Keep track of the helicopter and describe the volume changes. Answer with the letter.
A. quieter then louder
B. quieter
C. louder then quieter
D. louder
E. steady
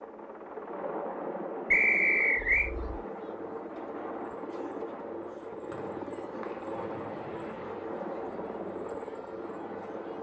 E.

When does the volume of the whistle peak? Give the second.
2 s.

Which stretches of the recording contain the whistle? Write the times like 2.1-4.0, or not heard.
1.7-2.7, 5.7-6.8.